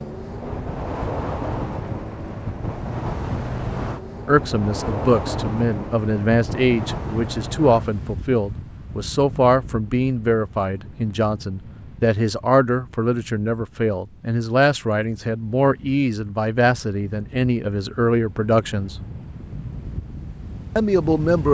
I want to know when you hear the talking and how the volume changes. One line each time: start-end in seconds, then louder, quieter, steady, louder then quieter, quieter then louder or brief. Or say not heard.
4.2-18.9 steady
20.8-21.4 brief.